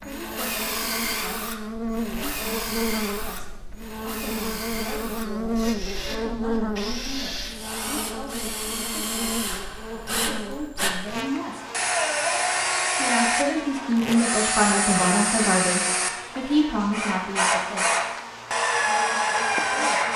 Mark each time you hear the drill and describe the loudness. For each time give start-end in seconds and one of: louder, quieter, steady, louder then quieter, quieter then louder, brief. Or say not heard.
0.0-20.1 louder.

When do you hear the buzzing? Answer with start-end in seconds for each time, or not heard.
0.0-20.1.